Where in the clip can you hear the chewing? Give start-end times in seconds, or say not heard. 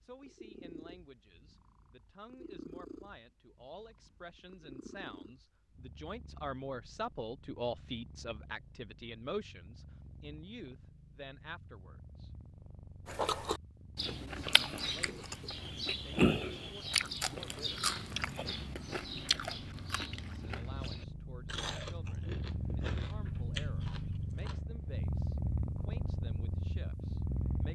13.1-24.6.